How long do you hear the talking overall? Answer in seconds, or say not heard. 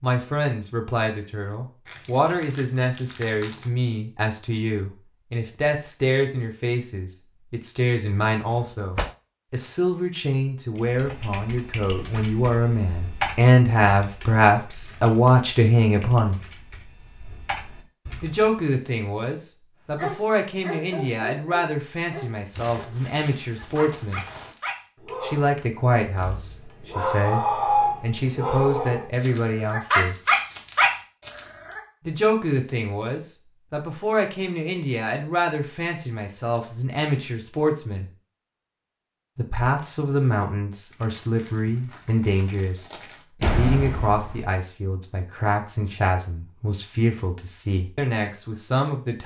43 s.